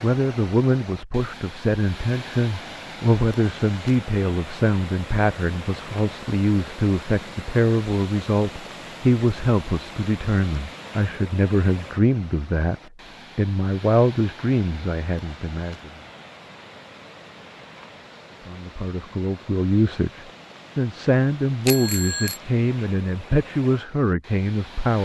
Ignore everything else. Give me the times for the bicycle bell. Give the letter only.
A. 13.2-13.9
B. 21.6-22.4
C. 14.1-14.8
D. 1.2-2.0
B.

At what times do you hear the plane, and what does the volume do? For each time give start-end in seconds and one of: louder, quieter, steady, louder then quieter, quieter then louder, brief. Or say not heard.
not heard.